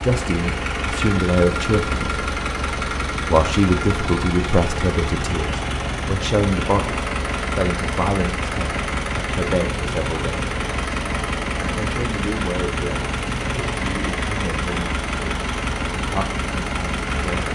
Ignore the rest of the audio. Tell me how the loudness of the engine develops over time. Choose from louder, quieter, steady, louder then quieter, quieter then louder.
steady.